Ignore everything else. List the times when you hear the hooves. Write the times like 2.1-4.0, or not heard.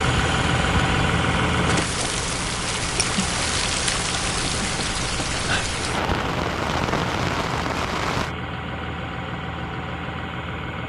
not heard.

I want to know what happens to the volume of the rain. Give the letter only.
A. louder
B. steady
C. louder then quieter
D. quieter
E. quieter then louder
A.